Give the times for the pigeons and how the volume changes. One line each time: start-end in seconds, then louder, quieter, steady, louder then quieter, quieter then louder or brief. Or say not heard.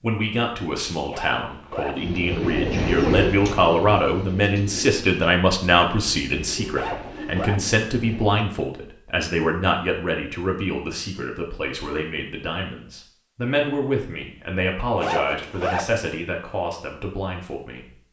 1.9-8.4 quieter.